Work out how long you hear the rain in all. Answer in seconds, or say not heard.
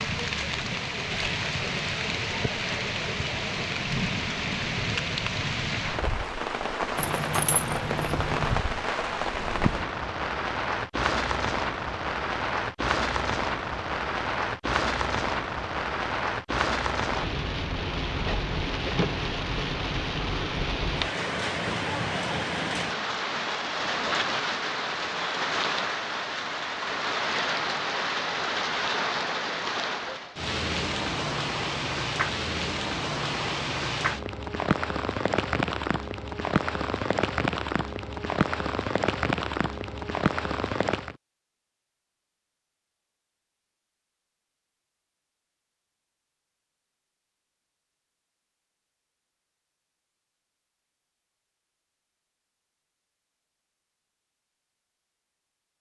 41 s.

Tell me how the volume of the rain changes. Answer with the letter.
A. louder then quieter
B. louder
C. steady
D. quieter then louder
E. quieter
C.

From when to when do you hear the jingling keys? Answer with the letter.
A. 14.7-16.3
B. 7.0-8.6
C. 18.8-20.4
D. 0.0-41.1
B.